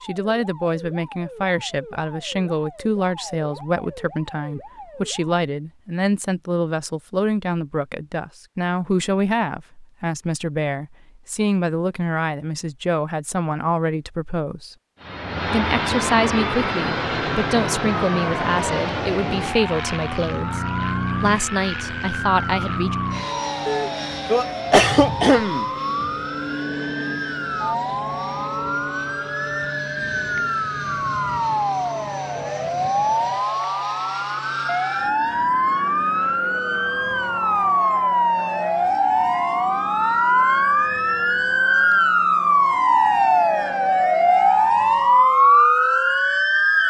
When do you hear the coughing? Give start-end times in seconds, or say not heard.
23.6-25.6.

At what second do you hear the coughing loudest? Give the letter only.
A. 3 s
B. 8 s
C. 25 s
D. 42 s
C.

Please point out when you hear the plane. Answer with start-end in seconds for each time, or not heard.
15.0-45.5.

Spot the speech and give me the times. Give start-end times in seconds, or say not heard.
0.0-14.8, 15.5-20.6, 21.2-22.9.